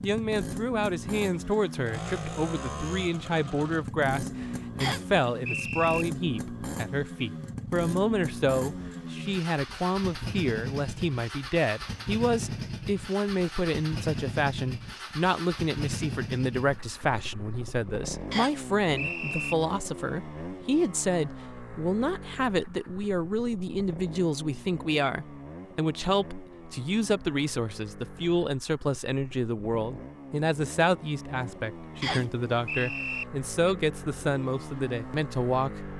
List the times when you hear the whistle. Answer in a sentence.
You can hear the whistle from 4.8 to 6.0 s, from 18.3 to 19.6 s and from 32.0 to 33.2 s.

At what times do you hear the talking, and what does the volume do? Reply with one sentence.
You can hear the talking from 0.0 to 35.9 s, at a steady volume.